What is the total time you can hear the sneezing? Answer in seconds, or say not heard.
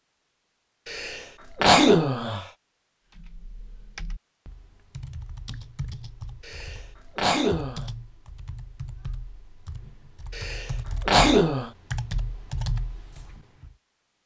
4 s.